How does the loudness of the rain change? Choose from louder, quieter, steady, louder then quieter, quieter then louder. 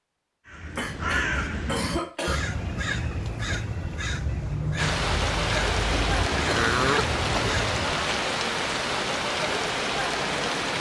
steady.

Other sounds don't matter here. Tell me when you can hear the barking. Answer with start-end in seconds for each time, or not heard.
not heard.